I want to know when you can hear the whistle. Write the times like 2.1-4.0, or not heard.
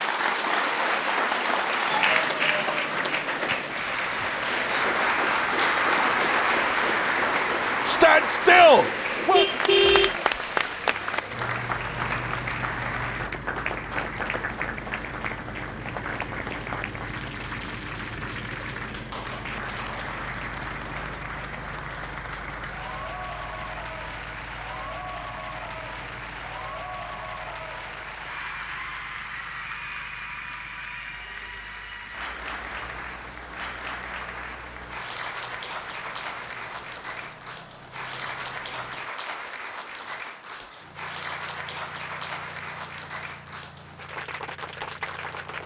not heard.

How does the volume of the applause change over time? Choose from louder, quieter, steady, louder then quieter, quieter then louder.
quieter.